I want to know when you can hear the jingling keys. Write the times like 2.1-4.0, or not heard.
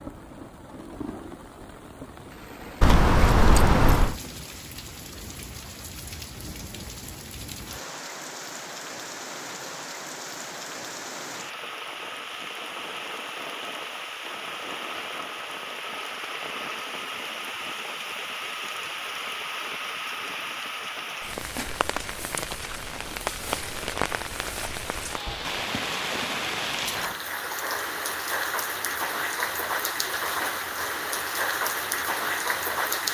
2.8-4.2, 25.2-27.2.